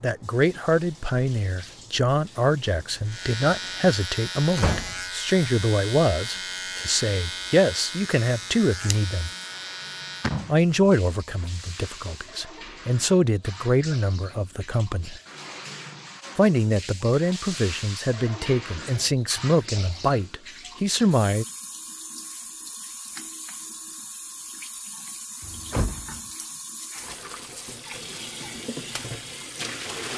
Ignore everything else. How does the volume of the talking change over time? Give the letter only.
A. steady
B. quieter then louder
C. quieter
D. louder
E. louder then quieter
A.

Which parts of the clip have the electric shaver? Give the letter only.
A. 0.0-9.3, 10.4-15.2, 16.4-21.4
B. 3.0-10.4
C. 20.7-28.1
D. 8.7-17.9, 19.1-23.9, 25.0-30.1
B.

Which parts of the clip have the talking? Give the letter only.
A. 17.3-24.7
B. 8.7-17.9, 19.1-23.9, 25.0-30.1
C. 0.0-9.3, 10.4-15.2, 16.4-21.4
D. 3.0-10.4
C.